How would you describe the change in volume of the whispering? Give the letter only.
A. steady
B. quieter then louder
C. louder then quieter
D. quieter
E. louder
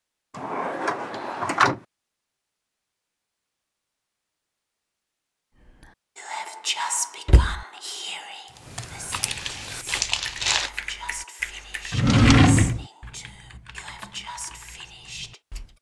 D.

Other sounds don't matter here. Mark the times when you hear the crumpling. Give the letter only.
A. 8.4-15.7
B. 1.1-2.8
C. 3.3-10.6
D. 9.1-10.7
D.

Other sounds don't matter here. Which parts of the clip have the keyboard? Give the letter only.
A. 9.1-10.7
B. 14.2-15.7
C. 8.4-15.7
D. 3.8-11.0
C.